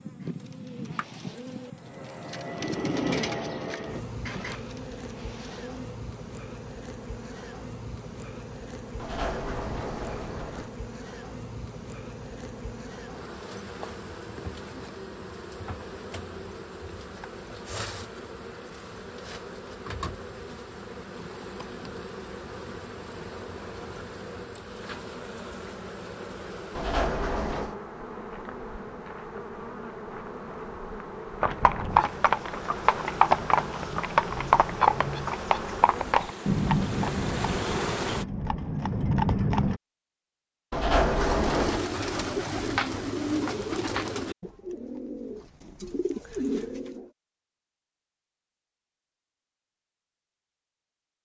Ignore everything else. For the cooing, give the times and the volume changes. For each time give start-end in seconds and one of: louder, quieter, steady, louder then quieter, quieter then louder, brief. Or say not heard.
0.2-6.0 louder then quieter
41.1-47.1 quieter then louder.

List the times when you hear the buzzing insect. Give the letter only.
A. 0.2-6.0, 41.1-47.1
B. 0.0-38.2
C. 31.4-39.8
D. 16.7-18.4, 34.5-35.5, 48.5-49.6
B.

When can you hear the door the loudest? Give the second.
41 s.